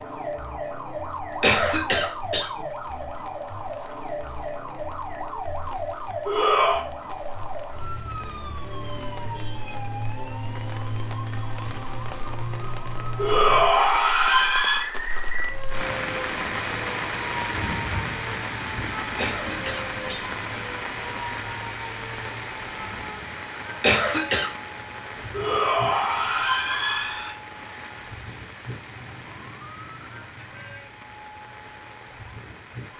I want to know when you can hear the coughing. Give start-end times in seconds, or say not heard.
1.4-2.6, 19.1-20.2, 23.8-24.5.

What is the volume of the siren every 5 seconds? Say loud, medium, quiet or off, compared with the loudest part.
loud, loud, loud, loud, medium, medium, quiet.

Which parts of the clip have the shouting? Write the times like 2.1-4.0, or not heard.
6.2-6.8, 13.2-14.8, 25.3-27.4.